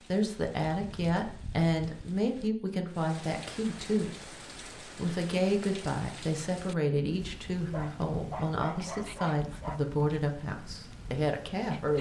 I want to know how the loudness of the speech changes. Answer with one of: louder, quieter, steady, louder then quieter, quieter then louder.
steady.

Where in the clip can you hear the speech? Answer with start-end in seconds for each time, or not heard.
0.1-4.3, 5.0-11.9.